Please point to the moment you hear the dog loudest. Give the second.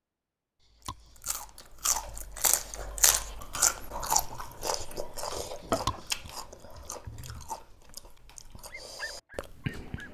9 s.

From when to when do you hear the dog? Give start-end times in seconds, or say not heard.
8.7-10.0.